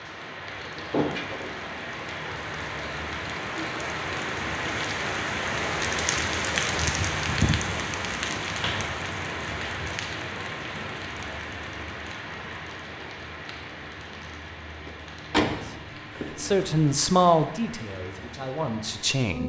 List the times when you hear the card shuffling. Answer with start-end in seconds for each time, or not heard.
not heard.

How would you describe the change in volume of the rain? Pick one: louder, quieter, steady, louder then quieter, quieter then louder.
louder then quieter.